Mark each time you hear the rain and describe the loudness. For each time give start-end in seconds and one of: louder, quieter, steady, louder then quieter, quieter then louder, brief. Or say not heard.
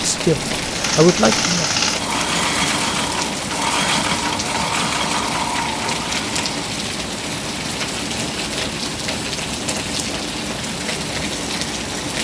0.0-12.1 steady.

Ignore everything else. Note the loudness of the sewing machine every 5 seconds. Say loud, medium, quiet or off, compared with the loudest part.
loud, loud, off.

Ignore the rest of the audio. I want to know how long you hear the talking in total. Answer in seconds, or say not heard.
2 s.